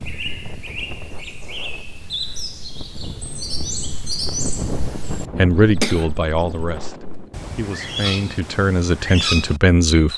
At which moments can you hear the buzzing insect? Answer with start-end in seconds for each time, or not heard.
not heard.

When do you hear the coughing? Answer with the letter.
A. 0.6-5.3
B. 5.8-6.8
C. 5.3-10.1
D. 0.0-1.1
B.